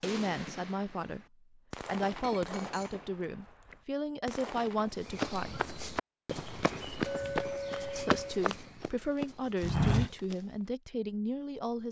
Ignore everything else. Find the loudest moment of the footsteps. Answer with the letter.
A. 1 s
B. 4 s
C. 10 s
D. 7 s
C.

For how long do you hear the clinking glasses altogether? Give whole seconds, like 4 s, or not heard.
2 s.